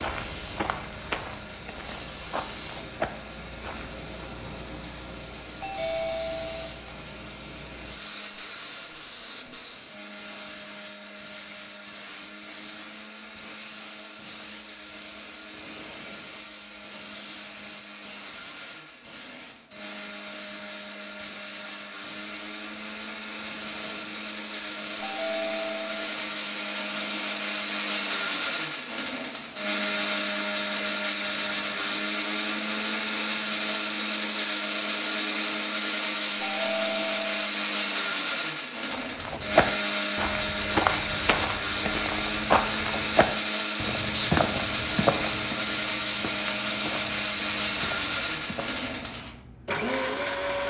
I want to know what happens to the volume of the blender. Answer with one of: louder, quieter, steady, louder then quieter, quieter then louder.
louder.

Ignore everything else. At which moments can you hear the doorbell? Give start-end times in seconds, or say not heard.
5.6-6.7, 25.0-26.1, 36.5-37.5.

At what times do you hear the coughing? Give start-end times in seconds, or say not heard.
not heard.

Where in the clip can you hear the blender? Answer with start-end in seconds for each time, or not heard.
0.2-50.6.